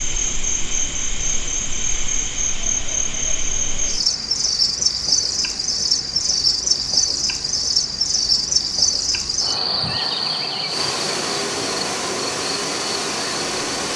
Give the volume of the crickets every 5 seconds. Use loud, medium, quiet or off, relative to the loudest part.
loud, loud, medium.